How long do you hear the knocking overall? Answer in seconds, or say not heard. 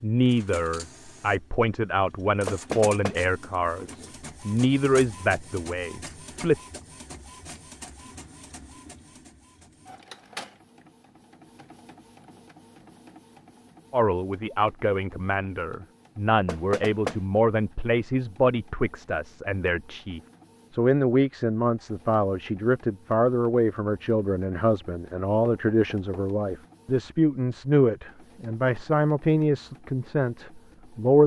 2 s.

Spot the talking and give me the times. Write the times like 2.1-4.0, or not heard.
0.0-6.7, 13.9-31.2.